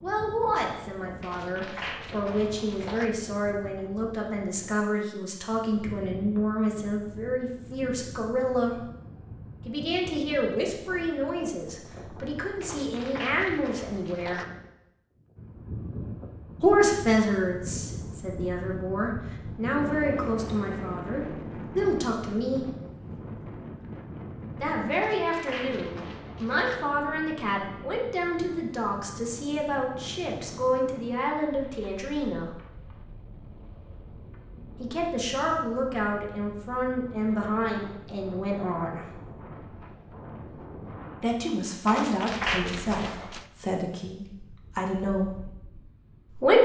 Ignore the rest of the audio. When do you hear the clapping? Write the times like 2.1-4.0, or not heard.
1.2-3.1, 12.6-14.4, 24.9-26.8, 41.9-43.5.